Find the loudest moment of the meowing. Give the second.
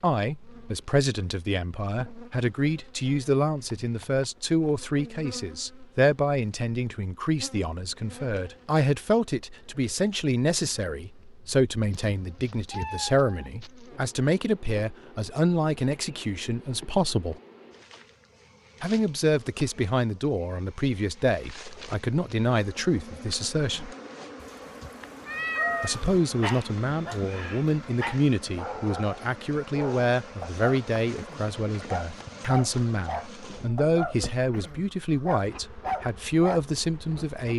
26 s.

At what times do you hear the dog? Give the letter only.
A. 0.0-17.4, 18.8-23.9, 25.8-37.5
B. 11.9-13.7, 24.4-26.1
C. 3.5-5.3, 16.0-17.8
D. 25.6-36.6
D.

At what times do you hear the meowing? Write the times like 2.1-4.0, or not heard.
11.9-13.7, 24.4-26.1.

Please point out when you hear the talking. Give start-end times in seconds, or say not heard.
0.0-17.4, 18.8-23.9, 25.8-37.5.